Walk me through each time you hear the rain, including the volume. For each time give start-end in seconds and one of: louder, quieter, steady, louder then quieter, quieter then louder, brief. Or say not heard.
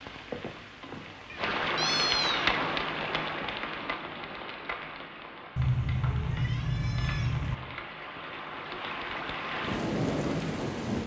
0.0-11.0 quieter then louder.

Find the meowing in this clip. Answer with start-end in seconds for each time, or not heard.
1.3-2.5, 5.5-7.5.